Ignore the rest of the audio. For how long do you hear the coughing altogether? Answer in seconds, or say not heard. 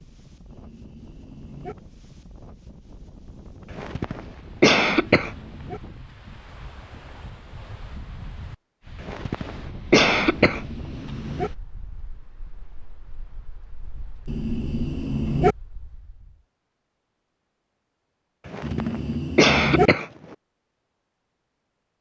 5 s.